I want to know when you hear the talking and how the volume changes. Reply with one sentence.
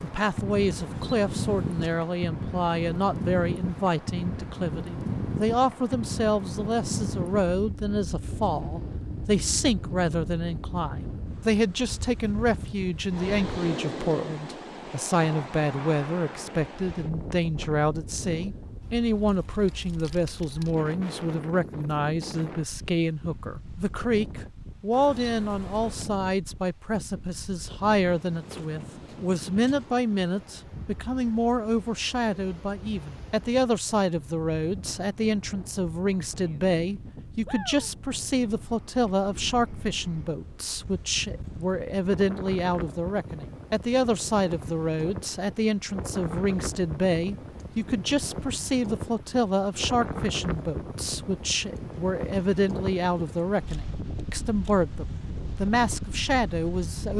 You can hear the talking from 0.0 to 57.1 s, at a steady volume.